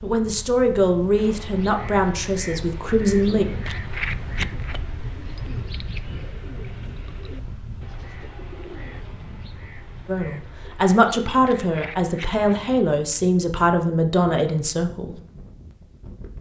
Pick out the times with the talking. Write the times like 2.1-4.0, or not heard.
0.0-3.5, 10.1-15.2.